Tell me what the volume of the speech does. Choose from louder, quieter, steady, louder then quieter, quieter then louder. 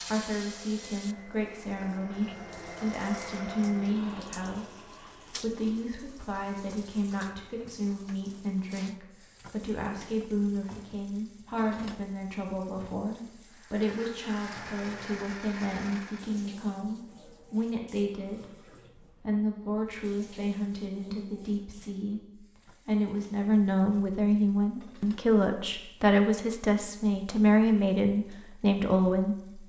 louder.